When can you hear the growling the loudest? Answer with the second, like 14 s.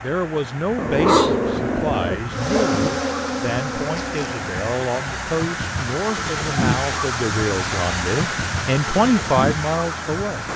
1 s.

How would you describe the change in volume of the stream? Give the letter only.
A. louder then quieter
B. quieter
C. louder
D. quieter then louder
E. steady
C.